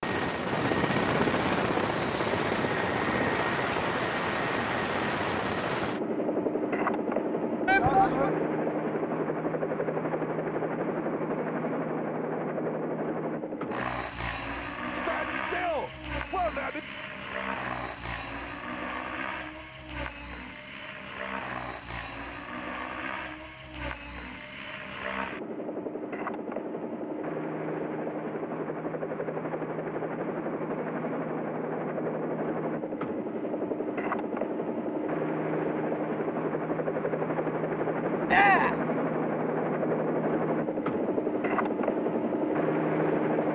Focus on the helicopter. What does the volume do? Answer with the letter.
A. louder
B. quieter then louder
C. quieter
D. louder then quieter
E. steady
B.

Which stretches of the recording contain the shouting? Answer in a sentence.
You can hear the shouting from 7.7 to 8.3 s, from 14.9 to 16.8 s and from 38.2 to 38.8 s.